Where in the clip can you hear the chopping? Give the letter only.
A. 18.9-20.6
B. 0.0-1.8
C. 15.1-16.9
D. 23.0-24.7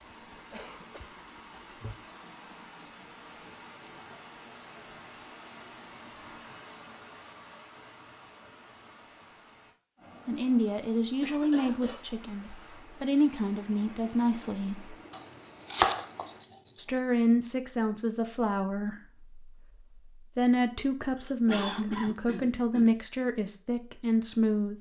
C.